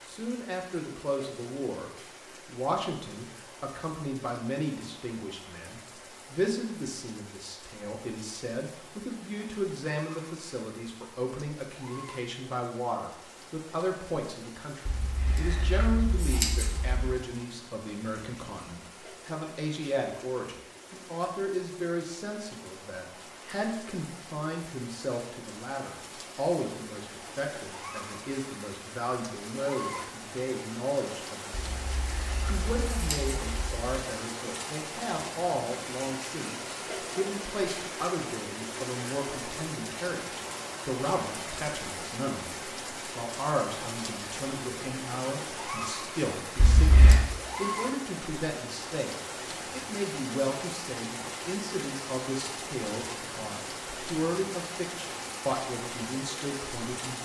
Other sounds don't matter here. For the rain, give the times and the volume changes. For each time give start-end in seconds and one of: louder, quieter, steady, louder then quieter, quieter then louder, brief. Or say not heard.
0.0-57.2 louder.